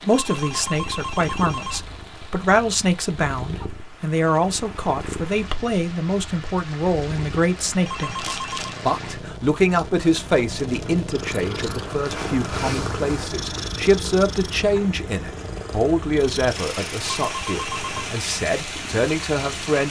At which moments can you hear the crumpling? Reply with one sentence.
The crumpling can be heard from 8.2 to 8.8 s.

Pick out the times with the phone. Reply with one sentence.
The phone can be heard from 0.1 to 1.8 s, from 7.8 to 8.7 s and from 17.1 to 18.1 s.